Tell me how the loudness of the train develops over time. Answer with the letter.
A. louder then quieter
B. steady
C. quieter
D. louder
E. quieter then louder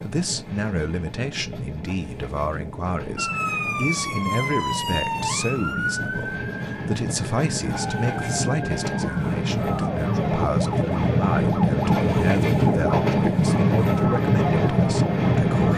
D.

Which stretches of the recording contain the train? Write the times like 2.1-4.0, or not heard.
0.0-15.7.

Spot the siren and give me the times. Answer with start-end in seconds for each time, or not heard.
3.1-15.7.